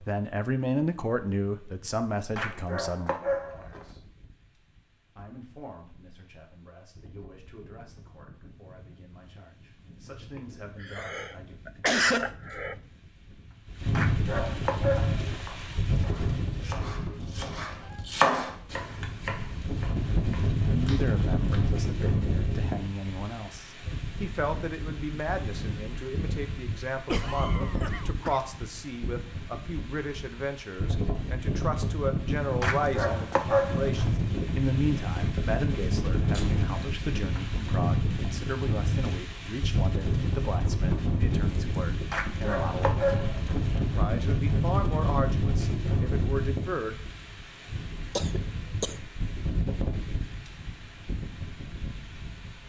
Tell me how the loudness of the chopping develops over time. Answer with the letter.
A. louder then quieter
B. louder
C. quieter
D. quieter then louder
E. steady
A.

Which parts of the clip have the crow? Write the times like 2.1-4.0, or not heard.
not heard.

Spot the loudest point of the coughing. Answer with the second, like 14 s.
12 s.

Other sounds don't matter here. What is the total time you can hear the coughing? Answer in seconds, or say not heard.
5 s.